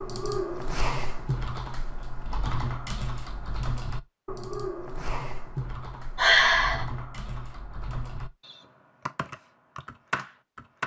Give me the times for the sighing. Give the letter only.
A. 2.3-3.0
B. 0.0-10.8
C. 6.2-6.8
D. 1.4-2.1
C.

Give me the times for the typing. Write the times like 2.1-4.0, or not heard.
0.0-10.8.